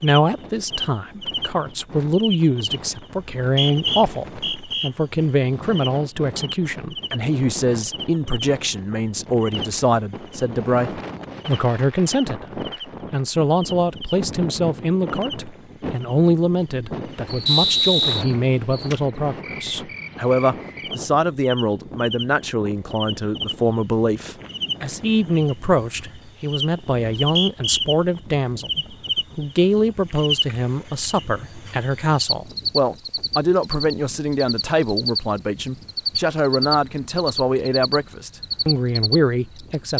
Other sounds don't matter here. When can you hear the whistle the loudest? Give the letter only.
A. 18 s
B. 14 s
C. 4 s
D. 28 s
A.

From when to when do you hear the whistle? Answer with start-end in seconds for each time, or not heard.
3.1-4.9, 17.4-18.2, 26.9-27.8.